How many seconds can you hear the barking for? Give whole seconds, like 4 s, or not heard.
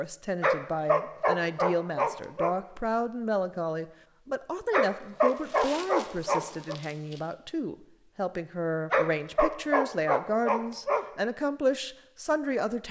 6 s.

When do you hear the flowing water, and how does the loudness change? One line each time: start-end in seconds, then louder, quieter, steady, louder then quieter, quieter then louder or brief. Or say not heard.
not heard.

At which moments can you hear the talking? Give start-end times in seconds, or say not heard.
0.0-12.8.